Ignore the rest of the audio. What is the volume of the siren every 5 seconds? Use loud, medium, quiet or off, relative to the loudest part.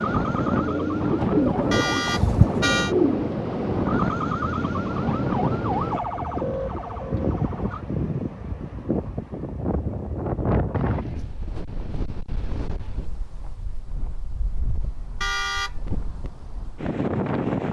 loud, loud, off, off.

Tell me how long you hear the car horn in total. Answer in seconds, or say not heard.
2 s.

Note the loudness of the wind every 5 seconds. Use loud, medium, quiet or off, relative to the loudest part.
loud, loud, medium, loud.